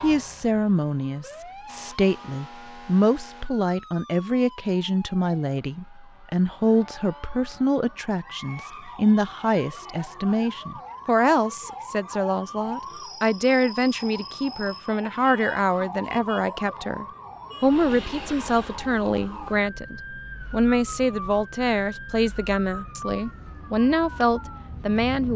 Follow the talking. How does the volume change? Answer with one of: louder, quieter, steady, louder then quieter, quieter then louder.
steady.